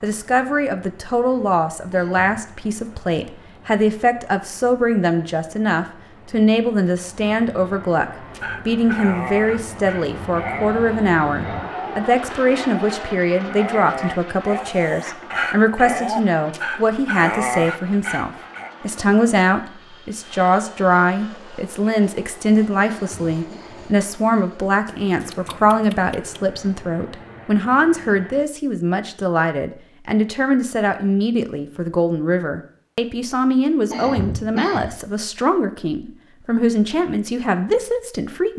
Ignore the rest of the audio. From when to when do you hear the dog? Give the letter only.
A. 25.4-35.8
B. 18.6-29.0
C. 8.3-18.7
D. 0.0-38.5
C.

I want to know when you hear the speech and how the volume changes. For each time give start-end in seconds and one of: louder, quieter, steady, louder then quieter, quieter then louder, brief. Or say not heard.
0.0-38.5 steady.